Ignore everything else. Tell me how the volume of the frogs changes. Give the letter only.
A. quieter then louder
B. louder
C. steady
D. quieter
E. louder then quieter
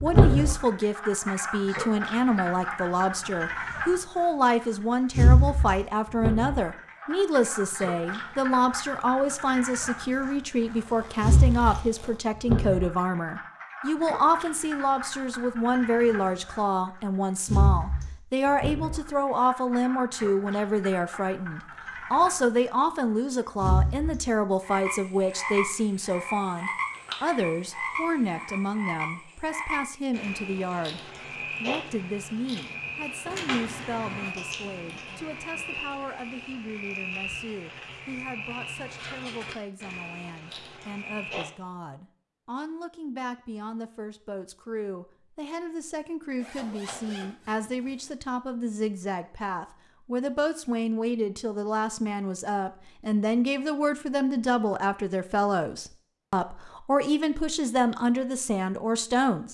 D.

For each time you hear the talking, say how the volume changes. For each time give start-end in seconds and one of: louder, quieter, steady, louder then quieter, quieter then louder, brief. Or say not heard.
0.0-59.5 quieter then louder.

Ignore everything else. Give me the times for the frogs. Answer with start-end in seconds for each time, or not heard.
0.0-4.2, 5.2-10.3, 11.2-16.6, 17.4-22.7, 23.6-41.5.